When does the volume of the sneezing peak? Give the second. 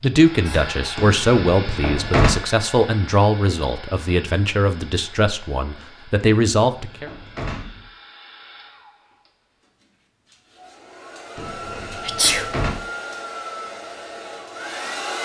12 s.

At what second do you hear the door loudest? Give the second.
2 s.